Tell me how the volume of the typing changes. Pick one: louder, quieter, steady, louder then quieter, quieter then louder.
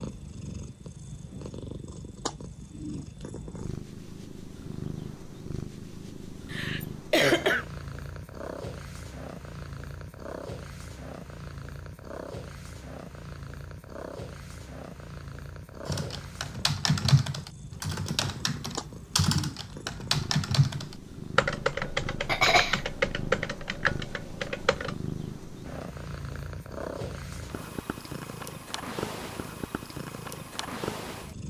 steady.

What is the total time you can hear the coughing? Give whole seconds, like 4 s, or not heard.
2 s.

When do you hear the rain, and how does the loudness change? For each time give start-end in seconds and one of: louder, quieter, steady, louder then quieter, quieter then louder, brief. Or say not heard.
not heard.